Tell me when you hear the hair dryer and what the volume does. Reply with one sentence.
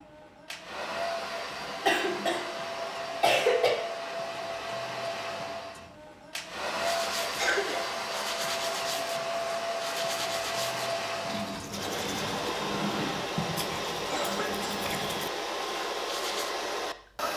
The hair dryer can be heard from 0.0 to 17.3 s, at a steady volume.